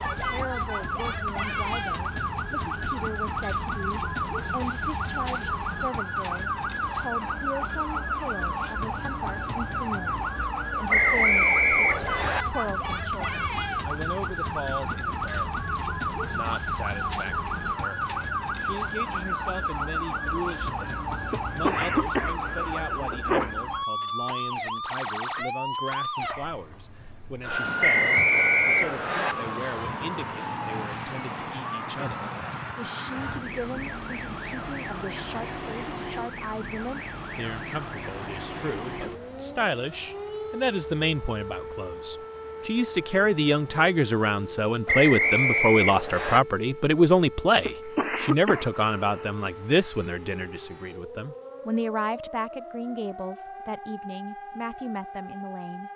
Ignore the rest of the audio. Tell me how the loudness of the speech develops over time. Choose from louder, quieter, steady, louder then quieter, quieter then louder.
louder.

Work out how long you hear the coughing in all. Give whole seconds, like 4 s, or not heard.
4 s.